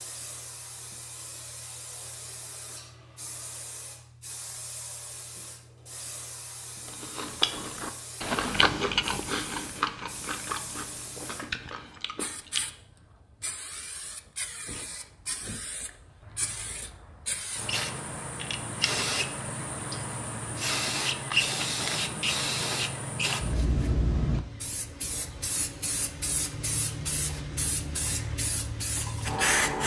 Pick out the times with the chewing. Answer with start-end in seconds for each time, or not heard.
6.8-12.7.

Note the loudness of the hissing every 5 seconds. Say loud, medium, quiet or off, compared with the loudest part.
quiet, quiet, quiet, medium, loud, loud.